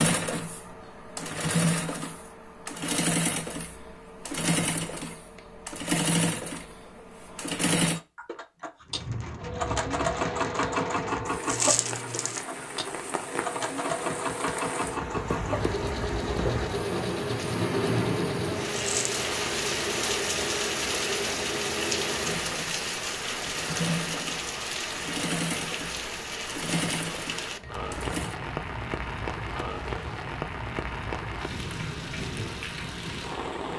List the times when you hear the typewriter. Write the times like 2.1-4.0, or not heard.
not heard.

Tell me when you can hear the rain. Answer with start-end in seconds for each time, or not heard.
8.8-33.7.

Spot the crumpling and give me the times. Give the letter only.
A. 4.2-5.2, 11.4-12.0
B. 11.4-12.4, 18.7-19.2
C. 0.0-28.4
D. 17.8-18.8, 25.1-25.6
B.